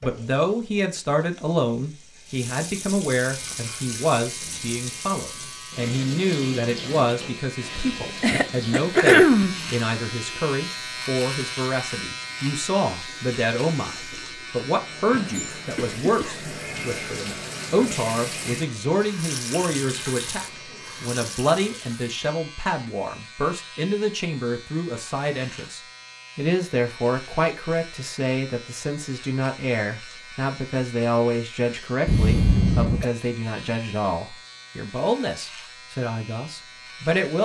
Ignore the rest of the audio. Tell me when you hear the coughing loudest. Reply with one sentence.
The volume of the coughing peaks at 9 seconds.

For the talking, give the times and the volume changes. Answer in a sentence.
The talking can be heard from 0.0 to 37.4 s, at a steady volume.